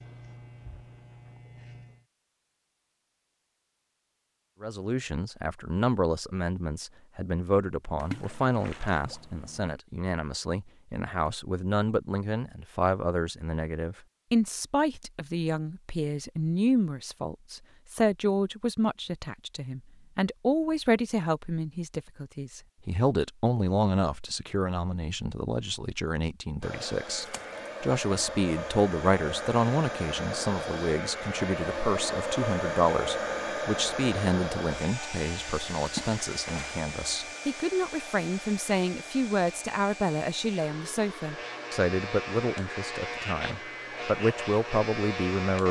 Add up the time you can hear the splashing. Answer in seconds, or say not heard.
3 s.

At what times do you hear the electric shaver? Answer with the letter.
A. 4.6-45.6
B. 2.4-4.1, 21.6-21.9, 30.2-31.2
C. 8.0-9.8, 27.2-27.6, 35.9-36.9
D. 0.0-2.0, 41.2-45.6
D.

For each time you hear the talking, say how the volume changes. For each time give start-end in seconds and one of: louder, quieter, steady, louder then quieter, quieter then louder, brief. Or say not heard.
4.6-45.6 steady.